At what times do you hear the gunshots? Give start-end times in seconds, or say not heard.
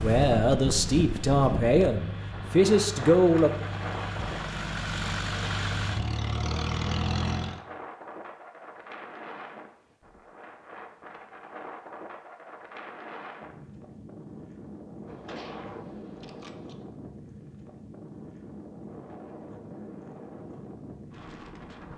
15.1-16.8.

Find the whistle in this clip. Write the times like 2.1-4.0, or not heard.
not heard.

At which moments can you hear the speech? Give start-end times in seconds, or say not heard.
0.0-3.5.